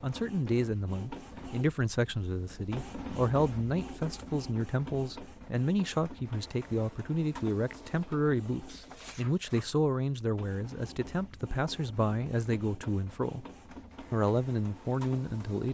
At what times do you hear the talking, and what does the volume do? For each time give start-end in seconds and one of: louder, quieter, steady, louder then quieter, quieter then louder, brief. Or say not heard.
0.0-13.4 steady
14.1-15.6 brief.